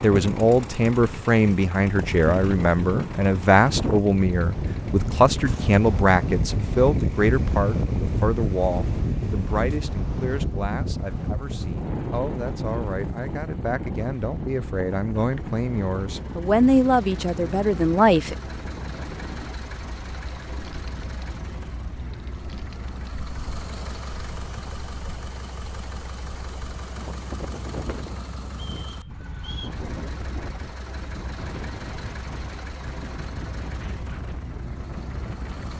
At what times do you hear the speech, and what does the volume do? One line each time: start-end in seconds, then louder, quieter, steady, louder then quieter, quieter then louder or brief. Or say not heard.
0.0-18.4 quieter then louder.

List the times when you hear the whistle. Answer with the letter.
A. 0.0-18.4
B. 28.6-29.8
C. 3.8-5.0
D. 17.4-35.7
B.